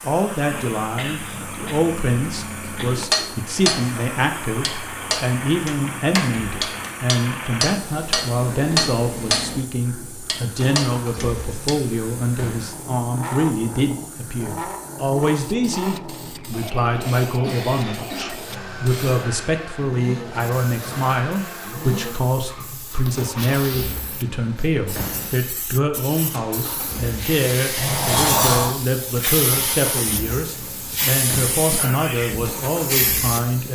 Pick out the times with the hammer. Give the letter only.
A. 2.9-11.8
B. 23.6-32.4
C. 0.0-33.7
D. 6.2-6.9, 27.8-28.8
A.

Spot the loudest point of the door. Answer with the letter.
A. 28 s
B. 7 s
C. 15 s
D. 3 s
A.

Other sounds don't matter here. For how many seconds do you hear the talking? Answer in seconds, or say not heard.
34 s.